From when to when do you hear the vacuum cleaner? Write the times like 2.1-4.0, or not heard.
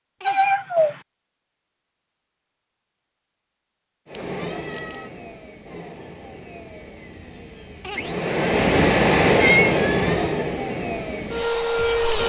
4.0-12.2.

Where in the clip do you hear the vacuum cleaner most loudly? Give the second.
9 s.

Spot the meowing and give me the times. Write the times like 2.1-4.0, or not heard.
0.2-1.0, 4.3-5.1, 8.5-10.3.